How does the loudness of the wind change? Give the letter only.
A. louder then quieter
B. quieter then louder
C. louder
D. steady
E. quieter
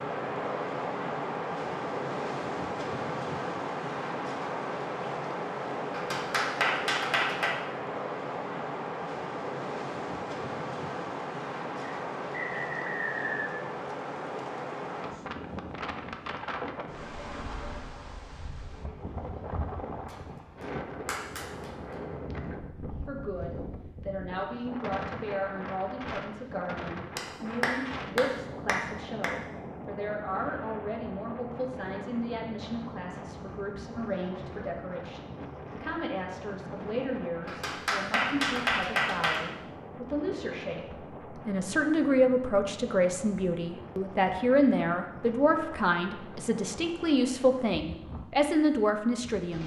E.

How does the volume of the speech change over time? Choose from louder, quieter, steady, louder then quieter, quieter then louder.
louder.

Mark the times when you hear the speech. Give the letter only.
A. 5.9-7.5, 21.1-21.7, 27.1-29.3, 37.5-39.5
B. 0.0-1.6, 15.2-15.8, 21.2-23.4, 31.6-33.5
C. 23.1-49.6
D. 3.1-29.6
C.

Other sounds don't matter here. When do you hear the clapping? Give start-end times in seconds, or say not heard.
5.9-7.5, 21.1-21.7, 27.1-29.3, 37.5-39.5.